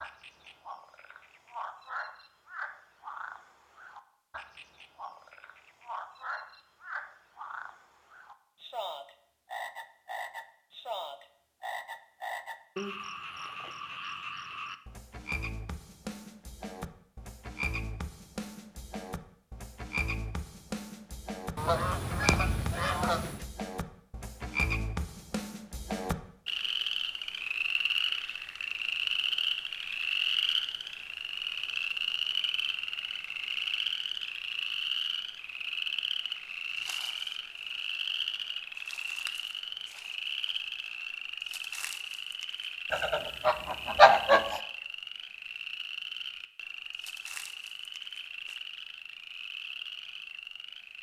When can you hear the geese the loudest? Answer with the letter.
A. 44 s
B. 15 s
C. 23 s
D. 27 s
A.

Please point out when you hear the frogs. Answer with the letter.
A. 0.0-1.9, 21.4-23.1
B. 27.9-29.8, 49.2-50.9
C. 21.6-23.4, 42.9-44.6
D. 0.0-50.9
D.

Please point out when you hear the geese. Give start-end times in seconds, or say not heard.
21.6-23.4, 42.9-44.6.